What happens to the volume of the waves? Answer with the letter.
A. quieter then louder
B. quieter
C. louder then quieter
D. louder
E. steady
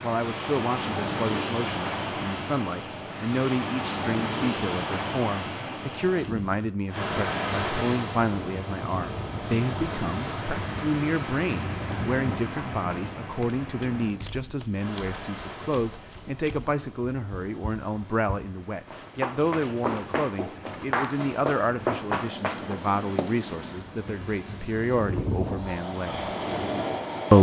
A.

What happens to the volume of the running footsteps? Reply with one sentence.
The volume of the running footsteps goes up.